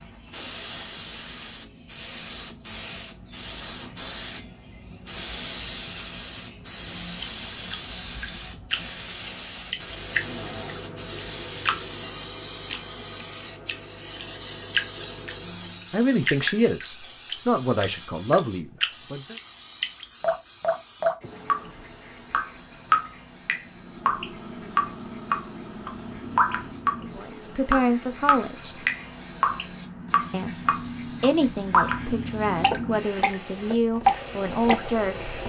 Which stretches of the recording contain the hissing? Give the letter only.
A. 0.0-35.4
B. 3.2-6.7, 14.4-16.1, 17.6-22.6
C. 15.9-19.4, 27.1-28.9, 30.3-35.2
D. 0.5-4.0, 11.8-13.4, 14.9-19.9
A.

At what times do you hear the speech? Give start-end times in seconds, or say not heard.
15.9-19.4, 27.1-28.9, 30.3-35.2.